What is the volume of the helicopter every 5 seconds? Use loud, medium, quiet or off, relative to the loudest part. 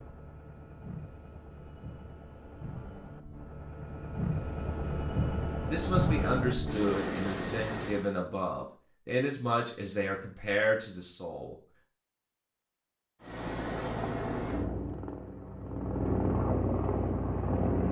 medium, loud, loud, loud.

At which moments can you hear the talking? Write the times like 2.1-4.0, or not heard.
5.6-11.6.